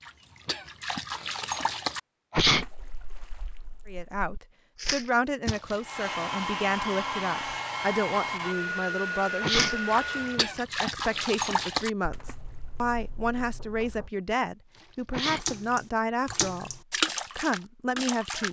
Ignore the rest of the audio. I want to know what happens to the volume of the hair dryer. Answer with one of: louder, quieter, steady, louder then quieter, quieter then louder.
steady.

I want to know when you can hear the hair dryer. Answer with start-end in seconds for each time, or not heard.
5.8-10.5.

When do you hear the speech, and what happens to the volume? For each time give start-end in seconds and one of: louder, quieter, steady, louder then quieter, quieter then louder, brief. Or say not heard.
3.9-18.4 steady.